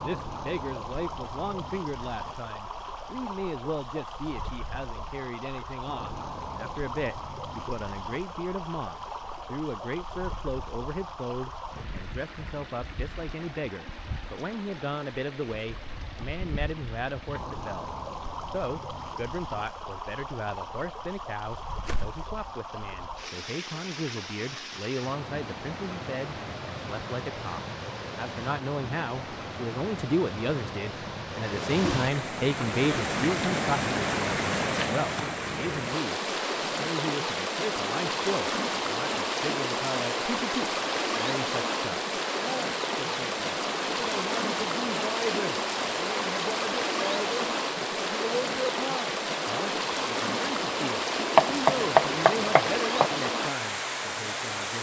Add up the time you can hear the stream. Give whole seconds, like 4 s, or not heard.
55 s.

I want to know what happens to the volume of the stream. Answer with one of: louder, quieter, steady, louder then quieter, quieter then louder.
louder.